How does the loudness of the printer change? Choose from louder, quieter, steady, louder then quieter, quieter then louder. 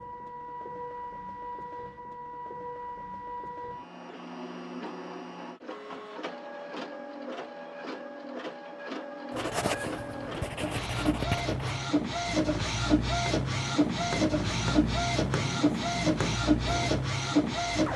louder.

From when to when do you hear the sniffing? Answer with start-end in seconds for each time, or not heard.
not heard.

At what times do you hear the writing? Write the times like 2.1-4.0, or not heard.
9.3-16.9.